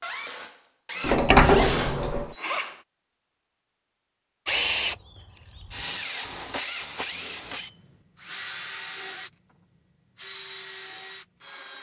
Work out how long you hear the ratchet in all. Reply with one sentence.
You can't hear the ratchet here.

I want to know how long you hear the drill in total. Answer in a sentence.
The drill can be heard for 10 seconds in total.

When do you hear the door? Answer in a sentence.
The door can be heard from 1.0 to 2.4 s.